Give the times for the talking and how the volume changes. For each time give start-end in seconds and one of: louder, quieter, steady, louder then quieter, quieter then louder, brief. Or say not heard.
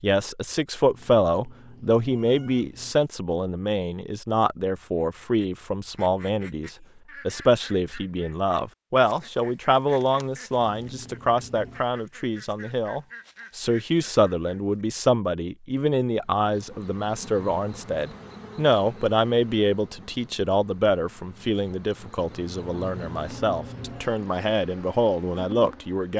0.0-26.1 steady.